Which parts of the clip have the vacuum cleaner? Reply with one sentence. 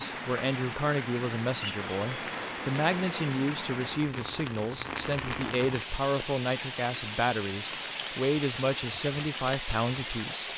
You can hear the vacuum cleaner from 1.8 to 3.4 s.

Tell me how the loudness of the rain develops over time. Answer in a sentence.
The volume of the rain stays about the same.